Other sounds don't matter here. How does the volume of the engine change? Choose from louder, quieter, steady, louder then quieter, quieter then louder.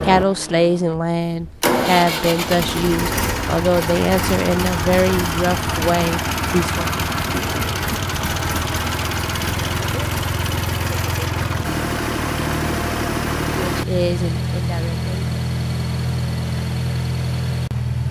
steady.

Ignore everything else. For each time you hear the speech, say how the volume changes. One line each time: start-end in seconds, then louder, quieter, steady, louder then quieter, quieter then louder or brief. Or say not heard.
0.0-6.9 steady
13.7-15.1 brief.